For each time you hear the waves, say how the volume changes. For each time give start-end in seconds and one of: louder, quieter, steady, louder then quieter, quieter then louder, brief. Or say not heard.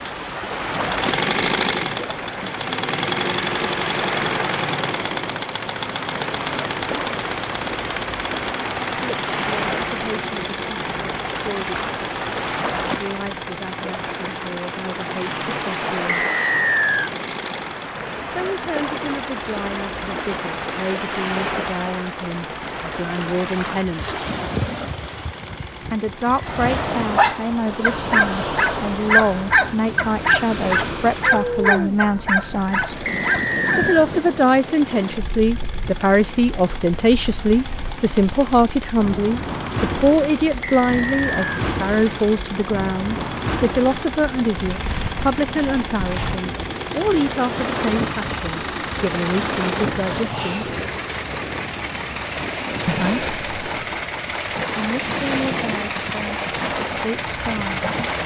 0.0-58.2 steady.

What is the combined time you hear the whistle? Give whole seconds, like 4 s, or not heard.
3 s.